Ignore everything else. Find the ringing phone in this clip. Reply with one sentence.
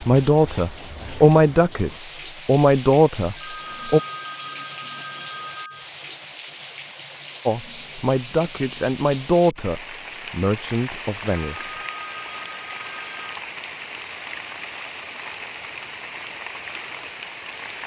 The ringing phone can be heard from 3.4 to 5.9 s and from 11.2 to 13.3 s.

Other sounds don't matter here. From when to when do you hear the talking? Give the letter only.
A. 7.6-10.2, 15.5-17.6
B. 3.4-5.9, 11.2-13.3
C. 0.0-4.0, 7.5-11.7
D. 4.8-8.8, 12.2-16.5
C.